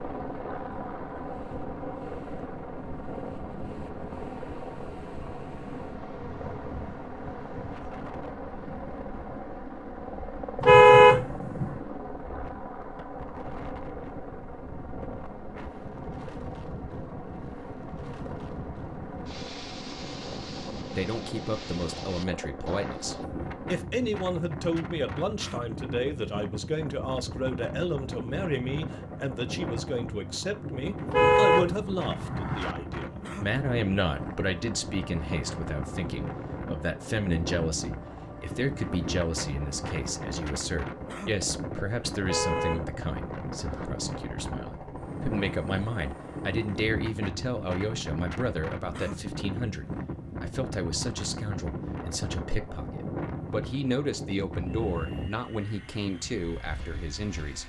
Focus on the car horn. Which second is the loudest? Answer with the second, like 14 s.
11 s.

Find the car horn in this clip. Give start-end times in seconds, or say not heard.
10.6-11.8, 31.1-32.8, 42.2-43.9.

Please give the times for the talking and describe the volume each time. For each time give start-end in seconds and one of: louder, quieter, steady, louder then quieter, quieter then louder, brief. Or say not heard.
20.9-57.6 steady.